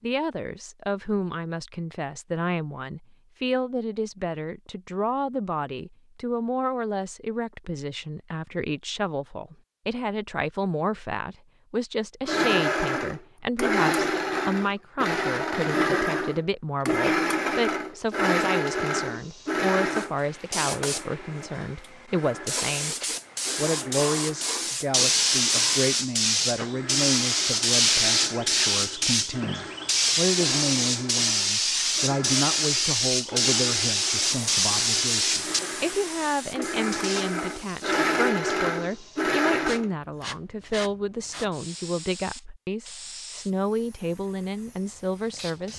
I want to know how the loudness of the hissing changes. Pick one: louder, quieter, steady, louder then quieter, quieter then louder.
louder then quieter.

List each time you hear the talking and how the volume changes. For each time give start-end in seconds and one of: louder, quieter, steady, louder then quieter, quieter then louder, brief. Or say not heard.
0.0-22.9 steady
23.6-45.7 steady.